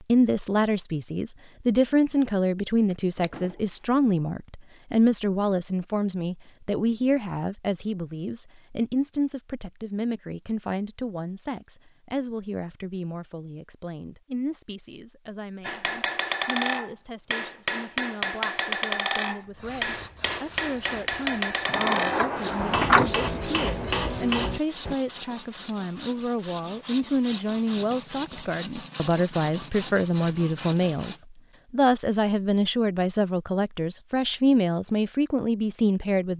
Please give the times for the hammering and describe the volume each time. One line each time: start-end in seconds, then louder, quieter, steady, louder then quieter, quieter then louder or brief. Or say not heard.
15.6-24.9 steady.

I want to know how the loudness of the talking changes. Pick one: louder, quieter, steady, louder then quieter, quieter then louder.
quieter then louder.